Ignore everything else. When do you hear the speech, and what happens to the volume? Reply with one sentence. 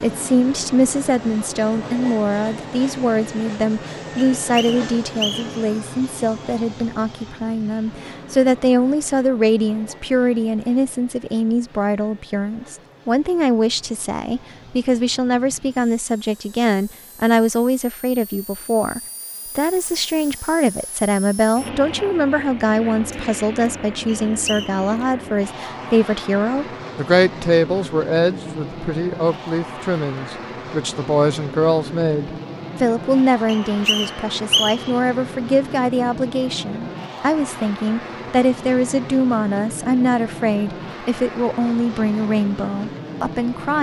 You can hear the speech from 0.0 to 43.7 s, at a steady volume.